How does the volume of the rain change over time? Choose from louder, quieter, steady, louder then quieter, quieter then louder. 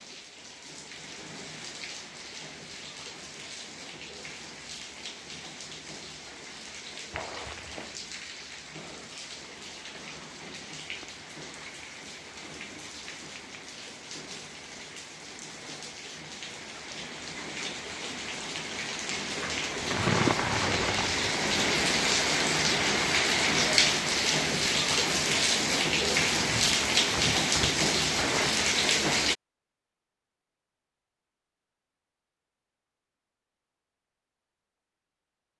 louder.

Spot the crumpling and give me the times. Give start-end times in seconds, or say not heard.
7.1-7.9, 19.9-21.4, 26.4-28.7.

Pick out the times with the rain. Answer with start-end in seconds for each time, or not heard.
0.0-29.4.